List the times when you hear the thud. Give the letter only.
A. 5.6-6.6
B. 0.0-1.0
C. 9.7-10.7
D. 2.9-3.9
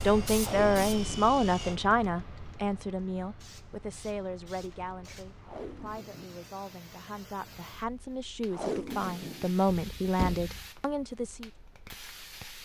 C.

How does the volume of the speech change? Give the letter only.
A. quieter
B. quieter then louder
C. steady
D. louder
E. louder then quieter
B.